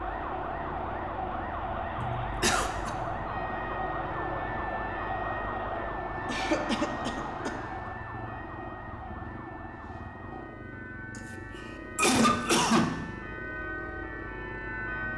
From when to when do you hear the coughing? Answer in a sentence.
You can hear the coughing from 1.9 to 3.0 s, from 6.2 to 7.5 s and from 11.9 to 13.1 s.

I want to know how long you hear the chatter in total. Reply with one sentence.
You can hear the chatter for 8 seconds altogether.